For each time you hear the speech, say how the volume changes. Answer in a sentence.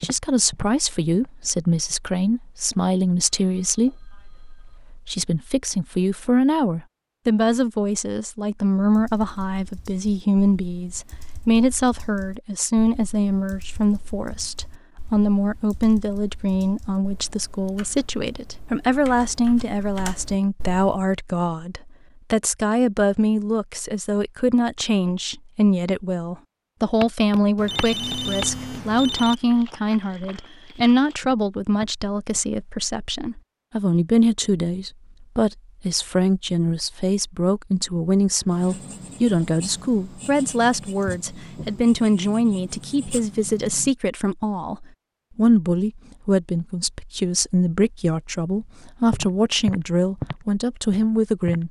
You can hear the speech from 0.0 to 51.6 s, at a steady volume.